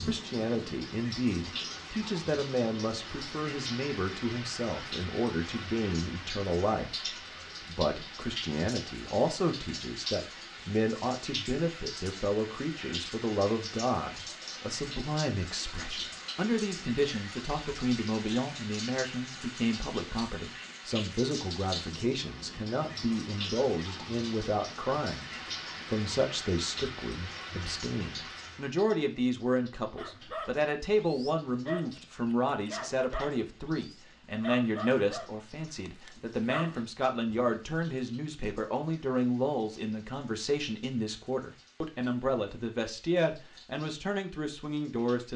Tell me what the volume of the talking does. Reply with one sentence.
The loudness of the talking stays about the same.